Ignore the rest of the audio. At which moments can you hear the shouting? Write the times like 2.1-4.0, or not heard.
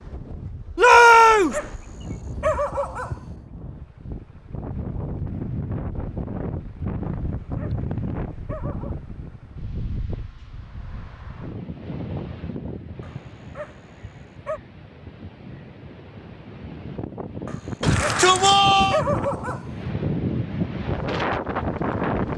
0.8-1.6, 17.8-19.0.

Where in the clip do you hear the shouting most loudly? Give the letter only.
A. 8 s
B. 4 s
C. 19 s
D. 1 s
D.